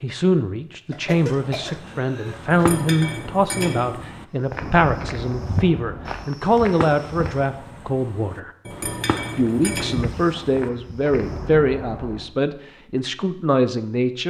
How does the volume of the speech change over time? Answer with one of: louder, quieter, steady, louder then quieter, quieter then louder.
steady.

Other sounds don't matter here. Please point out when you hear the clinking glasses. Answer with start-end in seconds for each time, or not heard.
2.5-4.1, 8.7-10.2.